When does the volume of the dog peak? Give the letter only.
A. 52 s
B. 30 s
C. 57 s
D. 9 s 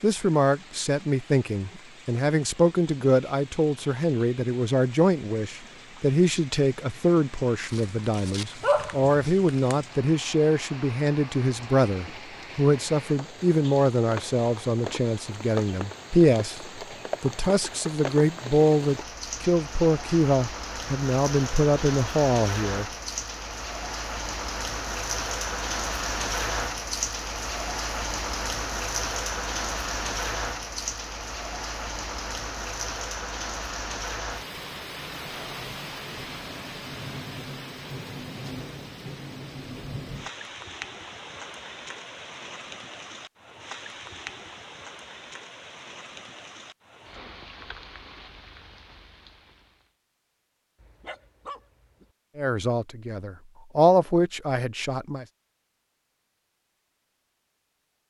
D.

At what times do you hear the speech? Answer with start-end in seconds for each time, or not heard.
0.0-22.9, 52.4-55.2.